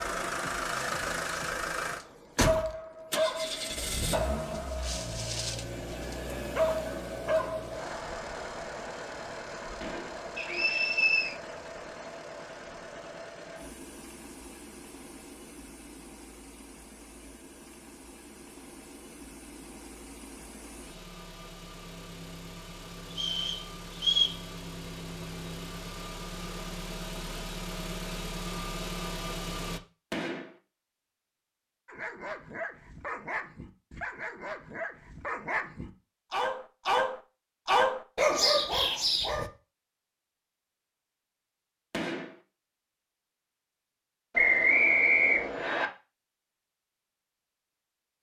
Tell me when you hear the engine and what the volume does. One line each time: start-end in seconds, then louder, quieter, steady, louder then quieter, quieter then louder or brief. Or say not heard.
0.0-29.8 quieter then louder.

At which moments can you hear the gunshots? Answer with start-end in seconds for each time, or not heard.
9.8-10.2, 30.1-30.6, 41.9-42.4.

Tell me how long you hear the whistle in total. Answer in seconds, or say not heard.
4 s.